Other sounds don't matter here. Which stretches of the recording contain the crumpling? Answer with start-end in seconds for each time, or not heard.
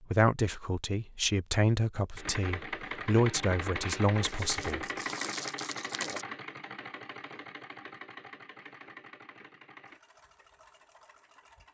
4.2-6.2.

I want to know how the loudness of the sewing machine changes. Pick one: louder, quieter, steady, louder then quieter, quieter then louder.
quieter.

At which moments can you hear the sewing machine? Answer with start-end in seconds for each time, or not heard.
2.1-11.6.